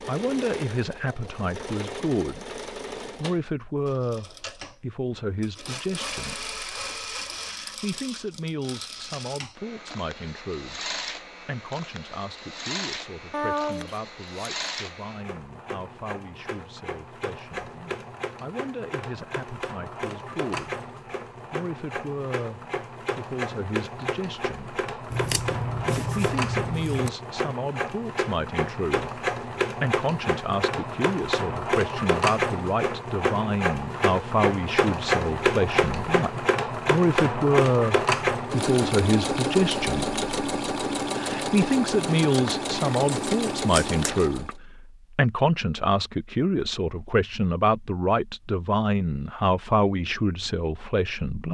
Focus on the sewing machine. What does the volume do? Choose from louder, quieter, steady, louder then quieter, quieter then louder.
louder.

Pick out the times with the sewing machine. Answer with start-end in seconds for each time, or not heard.
0.0-44.5.